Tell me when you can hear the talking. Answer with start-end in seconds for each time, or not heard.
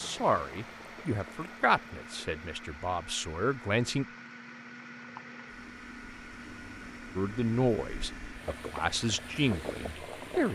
0.0-4.0, 7.2-10.5.